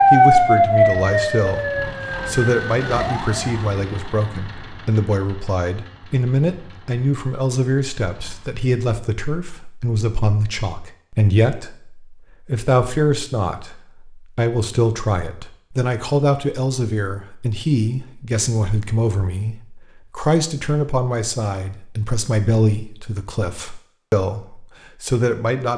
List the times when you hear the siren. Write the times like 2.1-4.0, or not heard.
0.0-3.6.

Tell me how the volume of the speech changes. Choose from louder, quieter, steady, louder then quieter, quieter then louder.
steady.